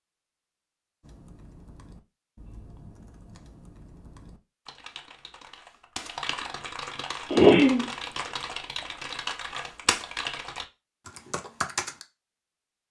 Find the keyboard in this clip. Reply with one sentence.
You can hear the keyboard from 1.0 to 12.1 s.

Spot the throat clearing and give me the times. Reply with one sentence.
The throat clearing can be heard from 7.3 to 7.8 s.